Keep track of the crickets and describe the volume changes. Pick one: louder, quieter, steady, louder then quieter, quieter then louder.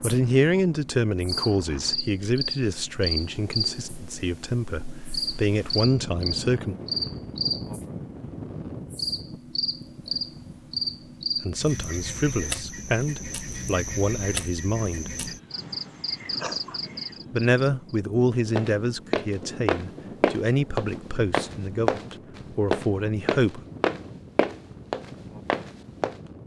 steady.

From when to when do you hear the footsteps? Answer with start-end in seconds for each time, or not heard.
18.6-26.1.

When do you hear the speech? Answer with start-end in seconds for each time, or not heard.
0.0-6.8, 11.4-15.1, 17.3-23.6.